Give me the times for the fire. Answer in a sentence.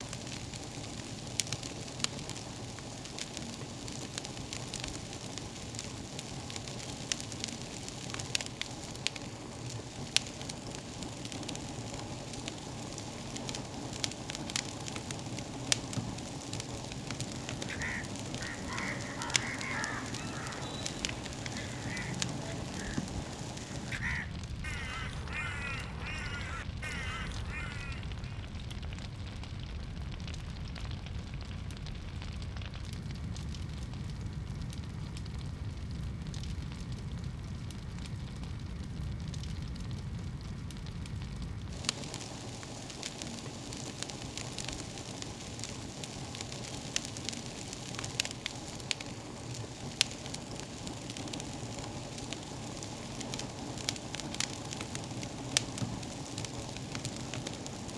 The fire can be heard from 0.0 to 57.9 s.